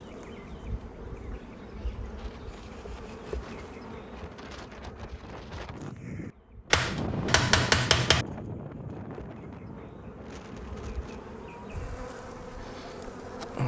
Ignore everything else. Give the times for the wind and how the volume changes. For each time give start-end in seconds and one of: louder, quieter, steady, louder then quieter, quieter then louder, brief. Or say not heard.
0.0-13.6 louder then quieter.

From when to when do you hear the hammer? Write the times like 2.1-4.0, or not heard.
6.7-8.2.